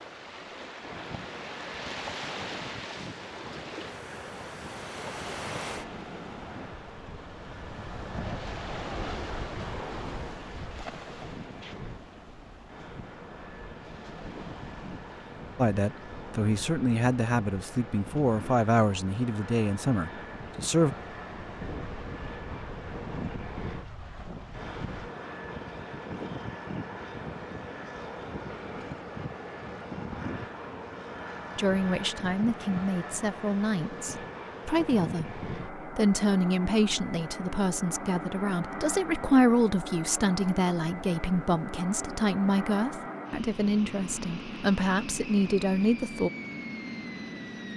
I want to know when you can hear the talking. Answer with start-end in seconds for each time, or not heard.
15.6-20.9, 31.6-46.3.